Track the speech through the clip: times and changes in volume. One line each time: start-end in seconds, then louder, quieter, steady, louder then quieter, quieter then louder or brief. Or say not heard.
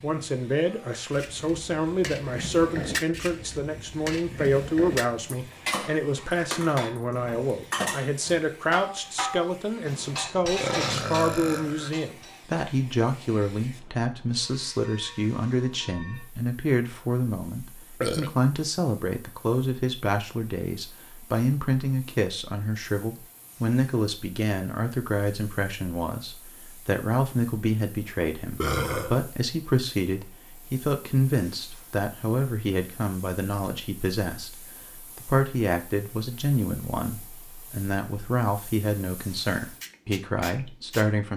0.0-41.3 steady.